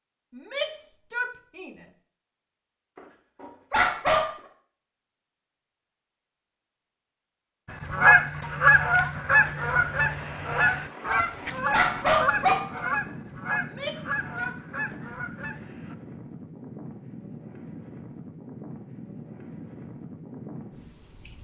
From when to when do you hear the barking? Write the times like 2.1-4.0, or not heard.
3.0-4.2, 10.9-12.6.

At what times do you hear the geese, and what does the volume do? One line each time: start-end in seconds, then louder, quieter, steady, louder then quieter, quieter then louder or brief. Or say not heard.
7.8-15.9 quieter.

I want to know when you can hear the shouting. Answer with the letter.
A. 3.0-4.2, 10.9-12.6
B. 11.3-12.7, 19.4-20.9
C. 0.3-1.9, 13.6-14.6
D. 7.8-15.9
C.